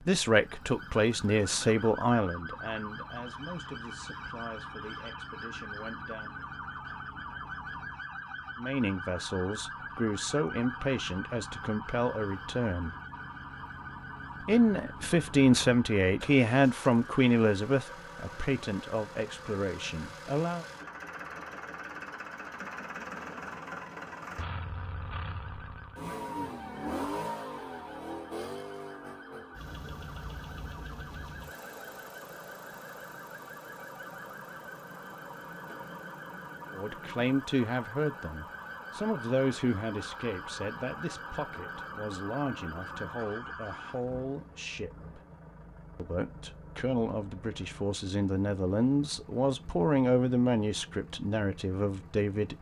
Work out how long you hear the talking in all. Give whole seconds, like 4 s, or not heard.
32 s.